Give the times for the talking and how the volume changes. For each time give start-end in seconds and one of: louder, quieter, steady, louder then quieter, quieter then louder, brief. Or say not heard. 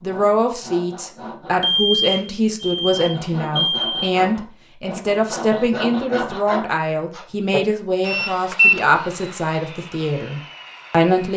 0.0-11.3 steady.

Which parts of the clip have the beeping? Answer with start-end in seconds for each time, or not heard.
1.6-4.0, 8.1-8.8.